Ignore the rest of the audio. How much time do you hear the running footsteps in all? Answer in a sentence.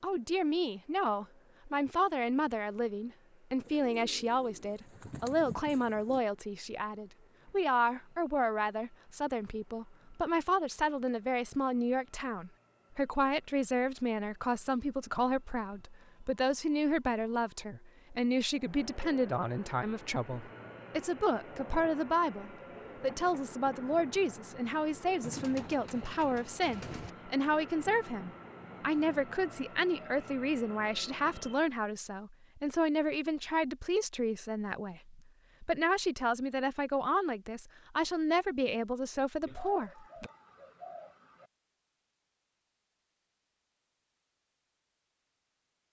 You can't hear the running footsteps here.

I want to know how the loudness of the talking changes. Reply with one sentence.
The loudness of the talking stays about the same.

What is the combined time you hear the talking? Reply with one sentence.
You can hear the talking for 40 seconds altogether.